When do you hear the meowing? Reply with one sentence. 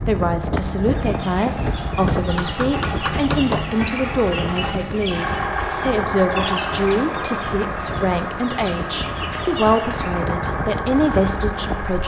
You can't hear the meowing here.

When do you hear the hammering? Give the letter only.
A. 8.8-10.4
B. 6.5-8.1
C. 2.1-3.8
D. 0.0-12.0
C.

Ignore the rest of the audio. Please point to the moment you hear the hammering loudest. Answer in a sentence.
The loudest moment of the hammering is at 3 seconds.